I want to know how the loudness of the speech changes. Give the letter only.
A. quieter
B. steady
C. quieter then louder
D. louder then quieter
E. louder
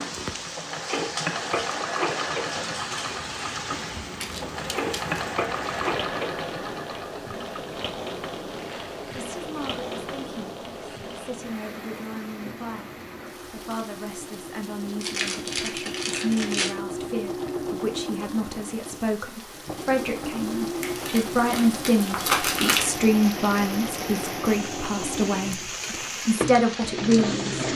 E.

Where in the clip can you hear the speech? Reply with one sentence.
The speech can be heard from 9.1 to 27.6 s.